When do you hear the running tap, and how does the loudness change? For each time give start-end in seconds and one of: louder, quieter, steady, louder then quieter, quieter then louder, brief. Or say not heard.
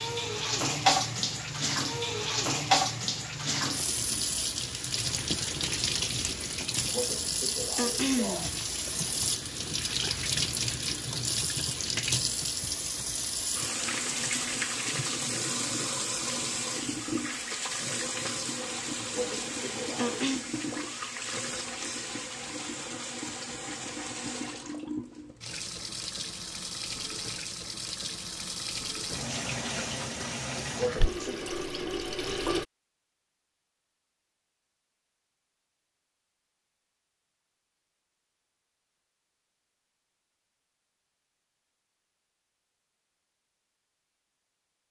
0.0-32.6 quieter.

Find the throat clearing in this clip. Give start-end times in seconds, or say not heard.
6.9-8.7, 19.1-20.4, 30.8-31.4.